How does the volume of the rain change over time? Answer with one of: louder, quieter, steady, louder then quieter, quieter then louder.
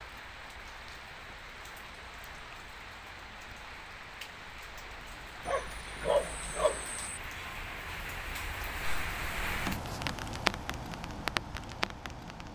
louder.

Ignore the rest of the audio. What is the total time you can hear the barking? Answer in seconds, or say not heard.
2 s.